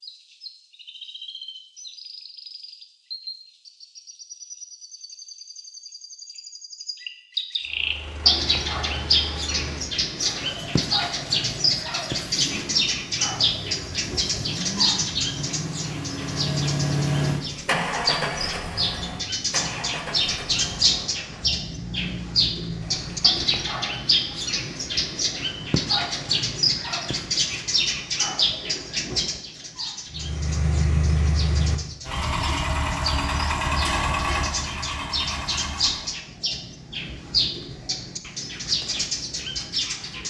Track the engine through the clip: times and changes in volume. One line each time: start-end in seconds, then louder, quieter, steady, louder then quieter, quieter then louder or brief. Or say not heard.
7.7-23.5 louder then quieter
30.1-36.2 quieter.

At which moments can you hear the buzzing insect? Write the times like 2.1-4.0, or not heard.
not heard.